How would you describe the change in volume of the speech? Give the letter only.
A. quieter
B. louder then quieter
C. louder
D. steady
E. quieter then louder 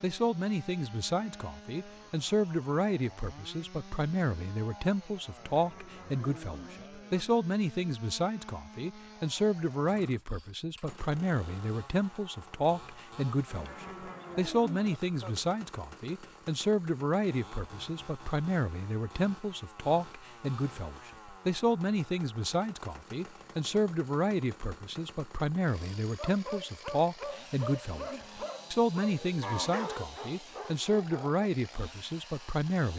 D.